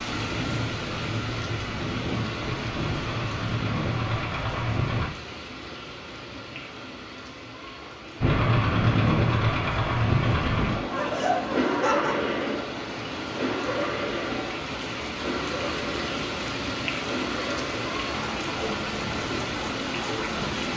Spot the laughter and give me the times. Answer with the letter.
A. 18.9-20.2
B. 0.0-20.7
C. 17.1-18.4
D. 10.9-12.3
D.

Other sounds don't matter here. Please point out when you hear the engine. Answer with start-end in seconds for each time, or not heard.
0.0-5.1, 8.2-20.7.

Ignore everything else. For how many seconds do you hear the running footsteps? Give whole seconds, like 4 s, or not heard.
not heard.